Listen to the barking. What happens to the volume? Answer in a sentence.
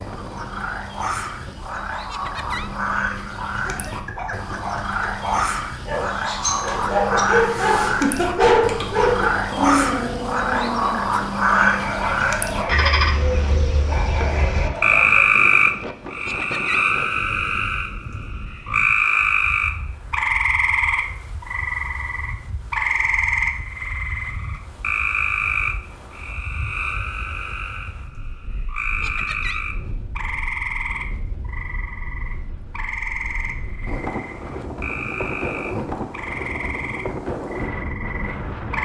The loudness of the barking goes up, then down.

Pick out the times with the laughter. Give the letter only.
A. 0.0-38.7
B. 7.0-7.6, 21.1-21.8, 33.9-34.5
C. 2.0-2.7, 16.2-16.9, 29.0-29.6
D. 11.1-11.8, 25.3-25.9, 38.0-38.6
C.